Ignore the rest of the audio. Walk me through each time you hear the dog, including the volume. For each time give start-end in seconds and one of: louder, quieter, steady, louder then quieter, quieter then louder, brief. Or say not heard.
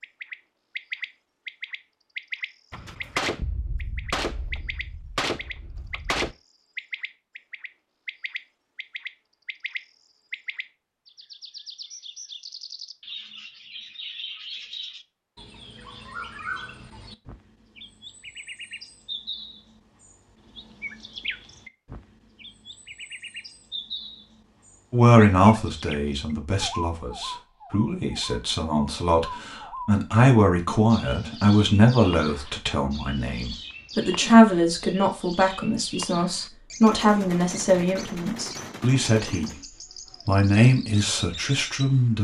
not heard.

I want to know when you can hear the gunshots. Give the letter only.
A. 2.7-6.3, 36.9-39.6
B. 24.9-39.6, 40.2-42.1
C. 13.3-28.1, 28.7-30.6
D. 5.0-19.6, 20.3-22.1
A.